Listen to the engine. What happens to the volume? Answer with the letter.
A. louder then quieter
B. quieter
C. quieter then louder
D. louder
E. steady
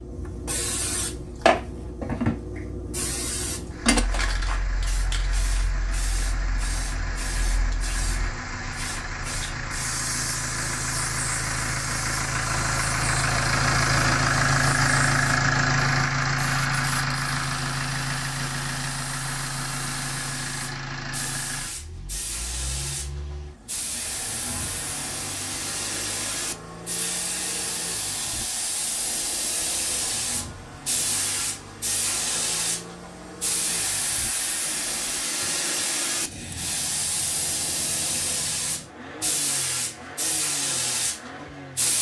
A.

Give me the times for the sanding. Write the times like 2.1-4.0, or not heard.
not heard.